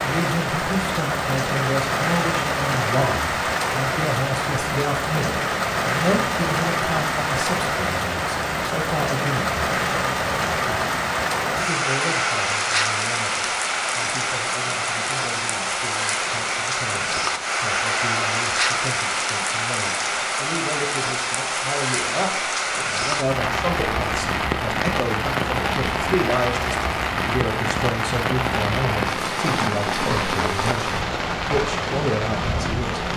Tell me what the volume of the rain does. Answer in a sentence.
The loudness of the rain stays about the same.